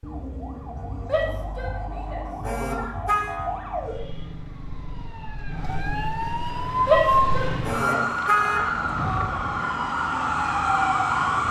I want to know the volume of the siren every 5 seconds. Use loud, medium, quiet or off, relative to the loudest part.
quiet, loud, loud.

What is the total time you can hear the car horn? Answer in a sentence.
You can hear the car horn for 2 seconds altogether.